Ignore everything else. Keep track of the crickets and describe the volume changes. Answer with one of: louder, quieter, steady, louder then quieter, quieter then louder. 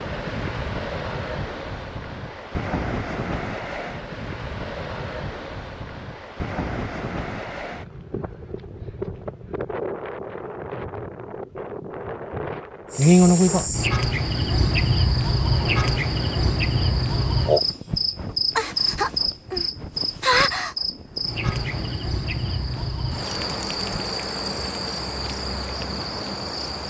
quieter.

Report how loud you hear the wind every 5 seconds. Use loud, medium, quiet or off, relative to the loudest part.
loud, loud, loud, medium, medium, medium.